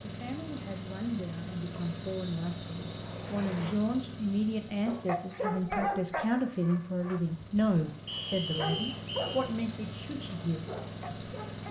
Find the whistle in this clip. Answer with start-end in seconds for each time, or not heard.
1.7-3.8, 8.1-9.4.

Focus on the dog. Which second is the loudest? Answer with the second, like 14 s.
6 s.